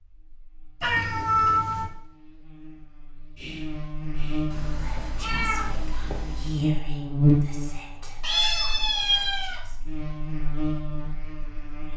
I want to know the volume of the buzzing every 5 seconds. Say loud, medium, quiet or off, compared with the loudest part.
medium, loud, medium.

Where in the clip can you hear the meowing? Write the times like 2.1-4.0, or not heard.
0.8-1.9, 4.5-6.5, 8.2-9.6.